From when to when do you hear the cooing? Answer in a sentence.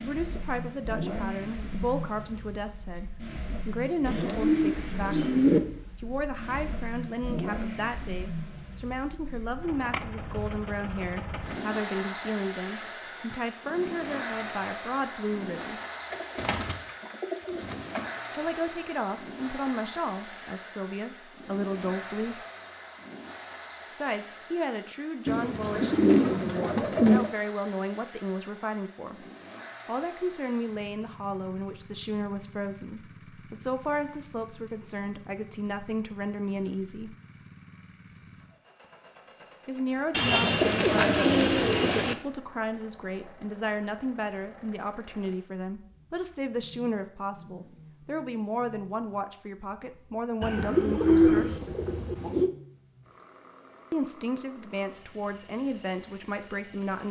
The cooing can be heard from 4.0 to 5.6 s, from 16.1 to 18.0 s, from 25.2 to 27.3 s, from 40.1 to 42.1 s and from 50.4 to 52.5 s.